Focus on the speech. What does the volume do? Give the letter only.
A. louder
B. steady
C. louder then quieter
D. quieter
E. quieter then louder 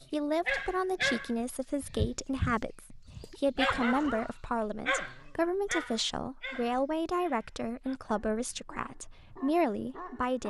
B.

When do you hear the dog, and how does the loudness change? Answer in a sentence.
The dog can be heard from 0.5 to 10.4 s, getting quieter.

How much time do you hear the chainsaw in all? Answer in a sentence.
The chainsaw can't be heard in this clip.